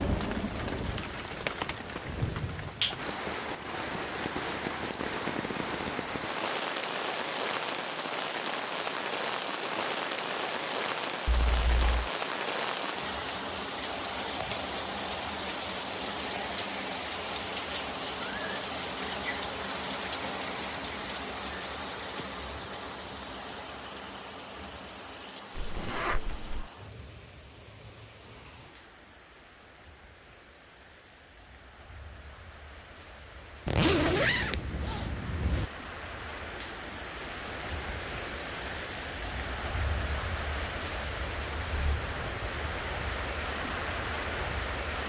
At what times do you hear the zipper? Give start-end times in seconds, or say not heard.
11.2-12.1, 25.6-26.7, 33.6-35.6.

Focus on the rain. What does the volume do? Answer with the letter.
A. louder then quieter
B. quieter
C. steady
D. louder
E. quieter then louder
E.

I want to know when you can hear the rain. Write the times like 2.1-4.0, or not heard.
0.0-45.0.